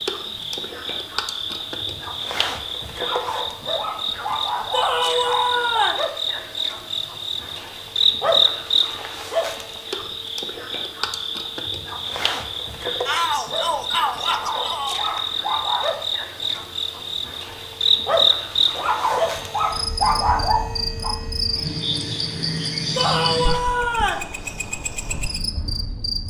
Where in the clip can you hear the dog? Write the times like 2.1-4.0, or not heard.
3.0-5.9, 14.2-15.9, 18.8-21.1.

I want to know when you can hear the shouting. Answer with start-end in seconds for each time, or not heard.
4.7-6.0, 13.1-15.1, 22.9-24.3.